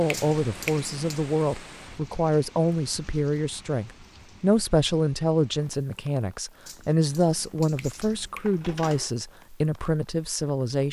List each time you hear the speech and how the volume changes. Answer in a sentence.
The speech can be heard from 0.0 to 10.8 s, at a steady volume.